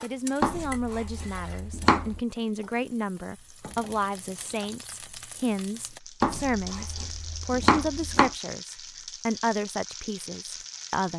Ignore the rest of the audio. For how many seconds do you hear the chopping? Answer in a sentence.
The chopping can be heard for 4 seconds in total.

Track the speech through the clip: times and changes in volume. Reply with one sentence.
You can hear the speech from 0.0 to 11.1 s, at a steady volume.